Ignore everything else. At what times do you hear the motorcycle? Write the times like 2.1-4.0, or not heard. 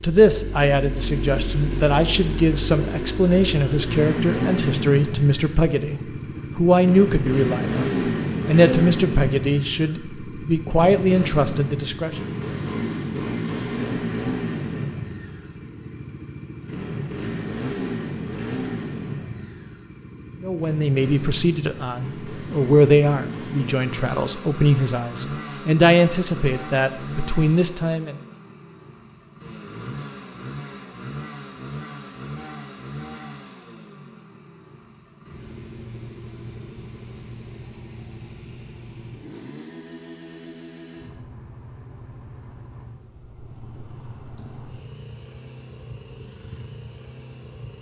0.0-47.7.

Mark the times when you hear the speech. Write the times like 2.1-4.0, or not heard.
0.0-12.2, 20.4-28.1.